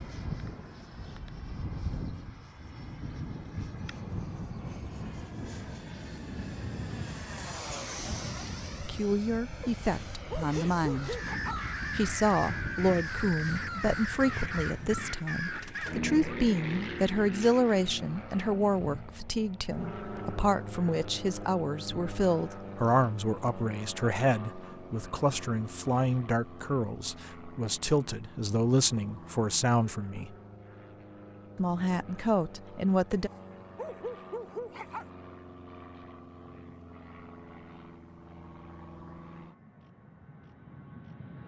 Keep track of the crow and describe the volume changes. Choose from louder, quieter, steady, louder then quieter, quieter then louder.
steady.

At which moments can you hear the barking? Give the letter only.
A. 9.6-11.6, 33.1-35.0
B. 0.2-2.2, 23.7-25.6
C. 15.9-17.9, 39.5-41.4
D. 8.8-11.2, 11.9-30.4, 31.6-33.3
A.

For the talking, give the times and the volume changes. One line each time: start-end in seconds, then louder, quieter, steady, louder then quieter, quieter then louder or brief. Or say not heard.
8.8-11.2 brief
11.9-30.4 steady
31.6-33.3 brief.